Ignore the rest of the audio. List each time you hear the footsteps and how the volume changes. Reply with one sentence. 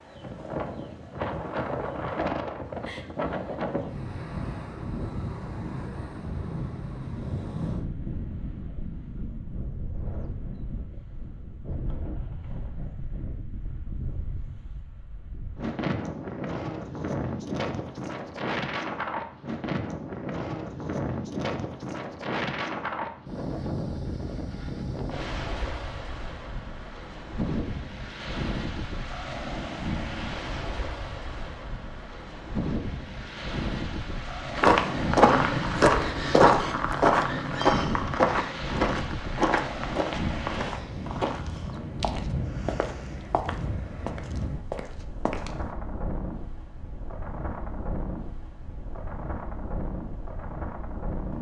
You can hear the footsteps from 34.5 to 45.8 s, getting quieter.